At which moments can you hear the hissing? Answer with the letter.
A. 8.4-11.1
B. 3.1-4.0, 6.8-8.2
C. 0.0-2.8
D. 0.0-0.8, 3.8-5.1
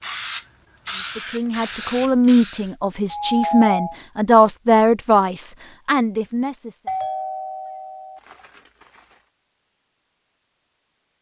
C.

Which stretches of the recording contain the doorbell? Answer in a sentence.
You can hear the doorbell from 3.1 to 4.0 s and from 6.8 to 8.2 s.